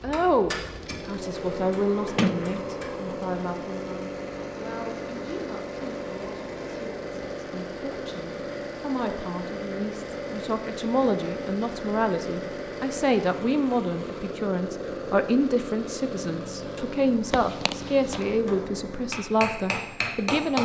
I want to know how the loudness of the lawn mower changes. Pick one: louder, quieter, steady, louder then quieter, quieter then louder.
steady.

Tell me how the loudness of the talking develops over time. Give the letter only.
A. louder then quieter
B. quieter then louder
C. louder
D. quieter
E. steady
B.